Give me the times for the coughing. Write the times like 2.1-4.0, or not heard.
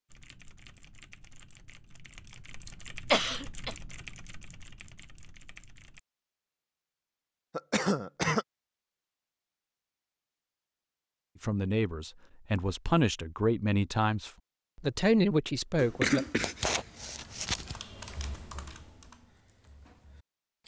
2.6-3.8, 7.5-8.4, 15.8-17.8.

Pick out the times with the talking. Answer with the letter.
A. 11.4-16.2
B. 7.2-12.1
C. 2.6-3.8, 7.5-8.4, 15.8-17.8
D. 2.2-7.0
A.